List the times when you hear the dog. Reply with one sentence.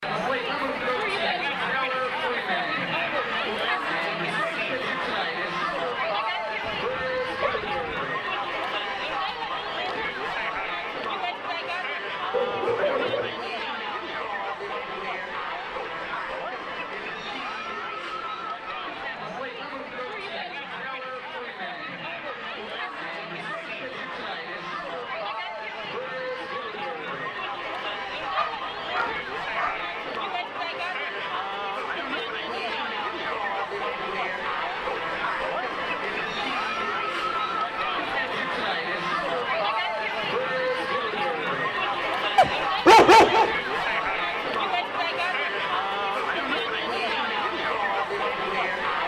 You can hear the dog from 6.6 to 8.1 s, from 12.3 to 13.3 s, from 27.9 to 29.8 s and from 42.4 to 43.5 s.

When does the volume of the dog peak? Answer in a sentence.
The volume of the dog peaks at 43 seconds.